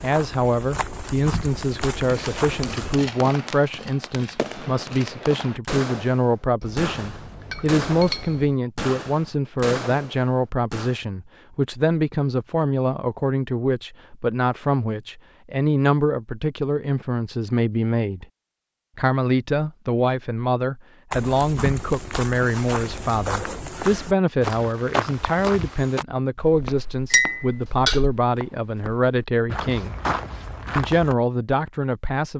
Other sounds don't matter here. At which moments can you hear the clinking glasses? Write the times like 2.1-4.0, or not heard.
6.6-8.6, 27.1-28.0.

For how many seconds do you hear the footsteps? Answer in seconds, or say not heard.
13 s.